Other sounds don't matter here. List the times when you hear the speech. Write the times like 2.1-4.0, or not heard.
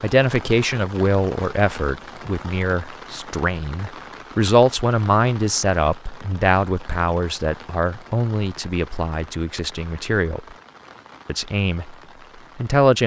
0.0-10.4, 11.2-11.9, 12.6-13.0.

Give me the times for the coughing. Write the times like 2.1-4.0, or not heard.
not heard.